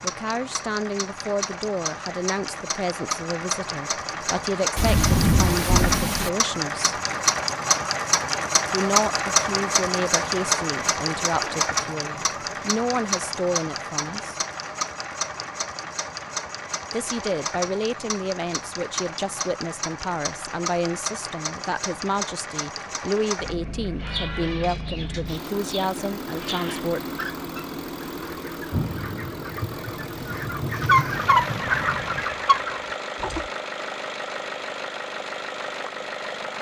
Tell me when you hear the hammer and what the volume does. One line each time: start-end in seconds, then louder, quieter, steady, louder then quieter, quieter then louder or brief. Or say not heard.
not heard.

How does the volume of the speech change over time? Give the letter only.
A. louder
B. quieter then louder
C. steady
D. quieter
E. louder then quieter
C.